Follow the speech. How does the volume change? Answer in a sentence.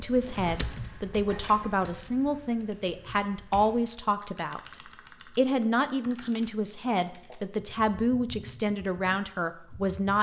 The volume of the speech stays about the same.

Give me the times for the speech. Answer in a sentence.
The speech can be heard from 0.0 to 10.1 s.